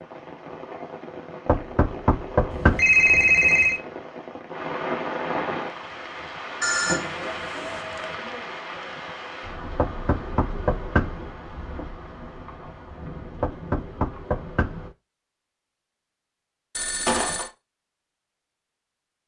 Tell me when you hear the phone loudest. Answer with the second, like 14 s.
3 s.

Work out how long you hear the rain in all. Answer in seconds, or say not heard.
15 s.